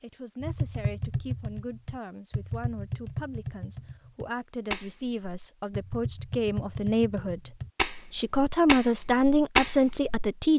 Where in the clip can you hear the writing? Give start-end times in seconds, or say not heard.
not heard.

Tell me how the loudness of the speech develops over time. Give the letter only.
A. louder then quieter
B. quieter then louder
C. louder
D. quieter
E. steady
C.